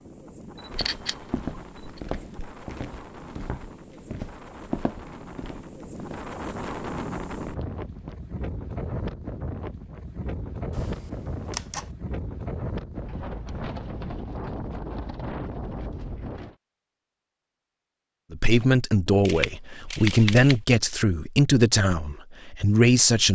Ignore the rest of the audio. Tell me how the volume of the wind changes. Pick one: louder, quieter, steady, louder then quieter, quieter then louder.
louder.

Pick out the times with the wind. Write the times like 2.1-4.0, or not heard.
0.0-16.6.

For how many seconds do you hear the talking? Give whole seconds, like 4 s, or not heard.
5 s.